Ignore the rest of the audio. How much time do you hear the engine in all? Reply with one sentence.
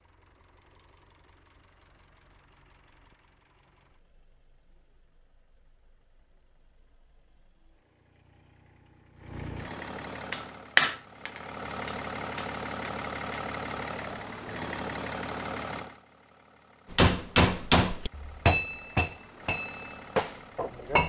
The engine can be heard for 21 seconds in total.